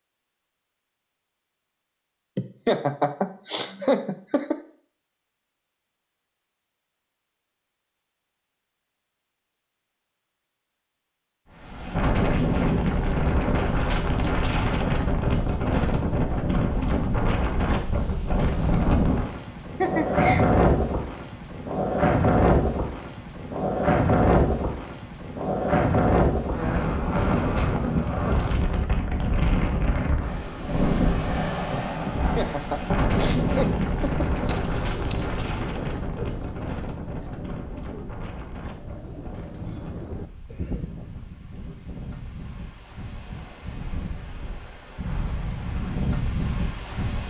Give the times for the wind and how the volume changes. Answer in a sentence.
The wind can be heard from 11.6 to 47.2 s, getting quieter.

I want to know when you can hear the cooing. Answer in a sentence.
You can hear the cooing from 34.2 to 41.0 s.